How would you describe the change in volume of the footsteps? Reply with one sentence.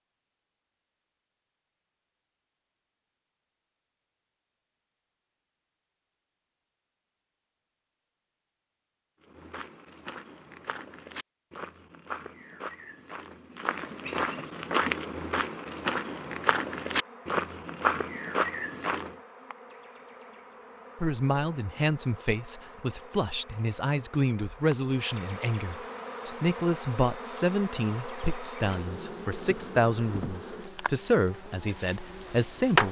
The volume of the footsteps goes up.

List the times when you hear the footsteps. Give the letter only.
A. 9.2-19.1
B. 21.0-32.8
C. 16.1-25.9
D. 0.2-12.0
A.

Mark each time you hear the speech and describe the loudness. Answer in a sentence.
The speech can be heard from 21.0 to 32.8 s, at a steady volume.